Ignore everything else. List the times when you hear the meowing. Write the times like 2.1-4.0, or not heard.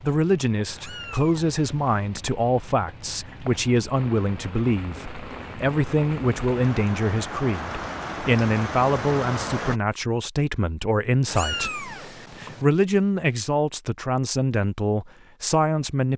0.7-2.1, 11.2-12.7.